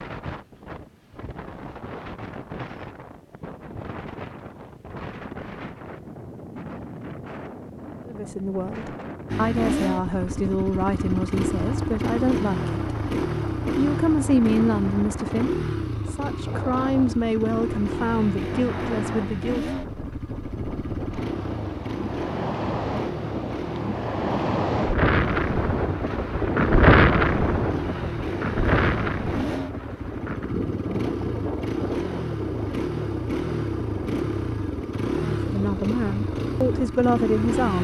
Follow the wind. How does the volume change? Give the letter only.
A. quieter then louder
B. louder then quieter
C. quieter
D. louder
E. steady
B.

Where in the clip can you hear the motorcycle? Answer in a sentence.
You can hear the motorcycle from 9.2 to 37.7 s.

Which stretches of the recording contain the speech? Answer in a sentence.
The speech can be heard from 8.1 to 12.9 s, from 13.8 to 19.6 s and from 35.2 to 37.7 s.